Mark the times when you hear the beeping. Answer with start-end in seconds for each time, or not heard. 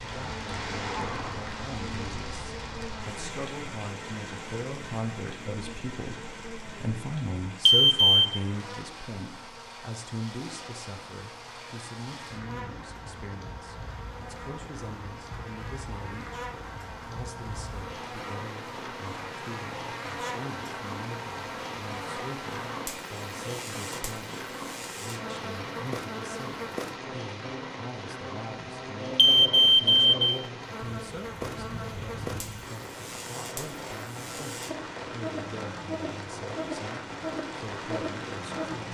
7.7-8.4, 29.1-30.1.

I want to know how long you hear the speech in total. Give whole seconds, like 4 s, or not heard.
39 s.